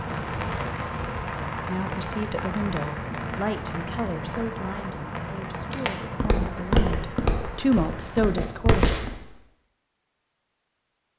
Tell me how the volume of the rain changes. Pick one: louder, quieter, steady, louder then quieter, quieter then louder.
quieter.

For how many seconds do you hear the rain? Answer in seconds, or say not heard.
8 s.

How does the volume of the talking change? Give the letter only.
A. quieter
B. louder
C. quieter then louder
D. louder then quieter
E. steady
C.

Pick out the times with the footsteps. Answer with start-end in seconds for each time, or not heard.
5.7-9.2.